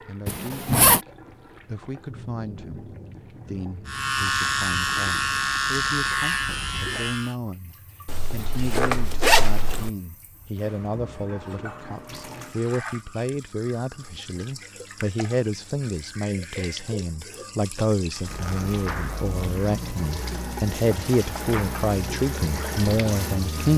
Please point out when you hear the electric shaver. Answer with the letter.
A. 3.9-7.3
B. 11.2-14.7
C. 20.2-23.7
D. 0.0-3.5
A.